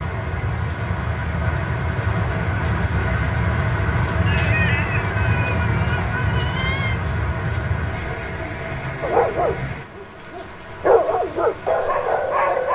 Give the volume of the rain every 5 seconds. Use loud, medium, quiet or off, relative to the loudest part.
loud, loud, quiet.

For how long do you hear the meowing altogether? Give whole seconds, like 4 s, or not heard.
3 s.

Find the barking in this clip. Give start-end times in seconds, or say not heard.
9.0-12.7.